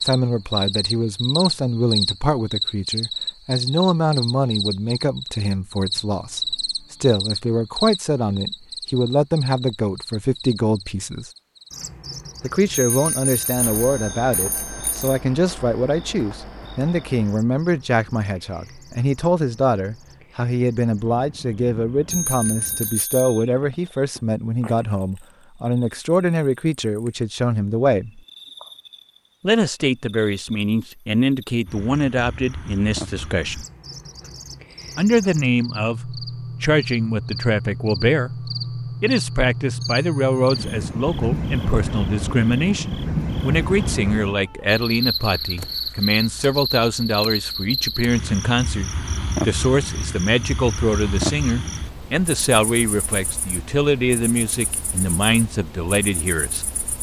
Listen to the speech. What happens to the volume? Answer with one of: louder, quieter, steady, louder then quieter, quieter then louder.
steady.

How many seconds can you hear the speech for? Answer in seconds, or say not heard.
53 s.